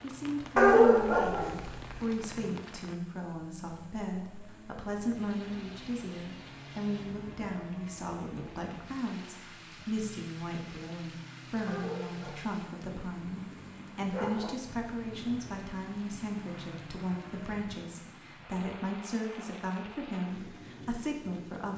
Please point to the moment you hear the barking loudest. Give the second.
1 s.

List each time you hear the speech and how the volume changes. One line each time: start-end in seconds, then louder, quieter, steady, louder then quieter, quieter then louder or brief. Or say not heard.
0.0-21.7 steady.